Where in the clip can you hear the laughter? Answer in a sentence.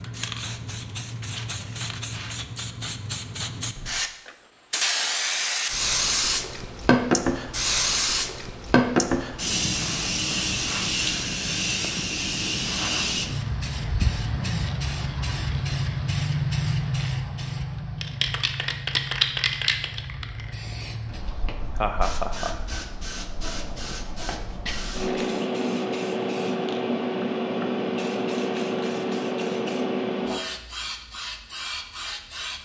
The laughter can be heard from 21.8 to 22.6 s.